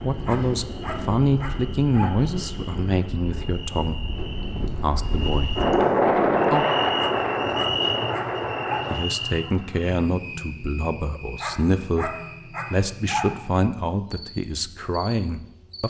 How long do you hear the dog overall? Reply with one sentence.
The dog can be heard for 6 seconds in total.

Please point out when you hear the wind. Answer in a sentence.
The wind can be heard from 0.0 to 9.0 s.